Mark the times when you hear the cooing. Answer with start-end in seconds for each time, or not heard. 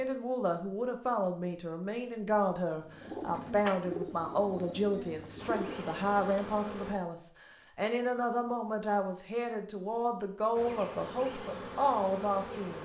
2.8-6.5.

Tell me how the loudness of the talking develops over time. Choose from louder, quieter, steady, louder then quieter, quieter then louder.
steady.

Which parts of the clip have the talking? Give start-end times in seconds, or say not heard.
0.0-12.8.